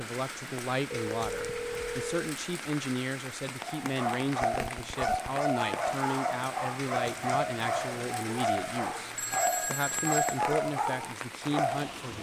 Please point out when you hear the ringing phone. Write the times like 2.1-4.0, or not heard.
0.9-2.3, 4.5-5.3, 9.2-10.4.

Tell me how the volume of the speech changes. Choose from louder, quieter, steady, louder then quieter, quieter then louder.
steady.